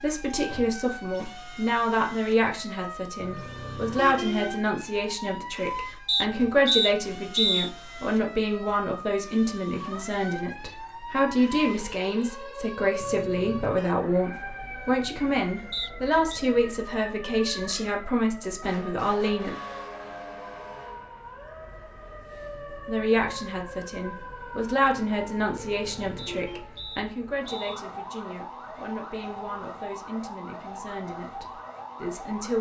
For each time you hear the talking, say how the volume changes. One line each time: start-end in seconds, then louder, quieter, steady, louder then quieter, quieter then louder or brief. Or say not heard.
0.0-19.6 steady
22.9-32.5 quieter.